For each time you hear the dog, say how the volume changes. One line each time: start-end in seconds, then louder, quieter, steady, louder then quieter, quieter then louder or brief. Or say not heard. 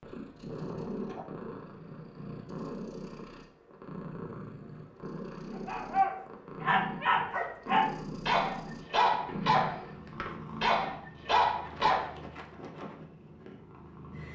5.5-12.1 steady.